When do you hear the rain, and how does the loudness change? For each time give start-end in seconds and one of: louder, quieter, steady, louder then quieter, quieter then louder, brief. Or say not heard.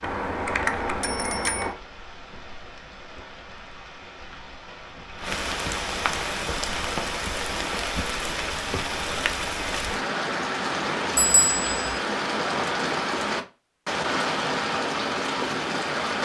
0.0-16.2 louder.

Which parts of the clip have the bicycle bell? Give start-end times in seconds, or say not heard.
0.0-1.8, 11.2-12.0.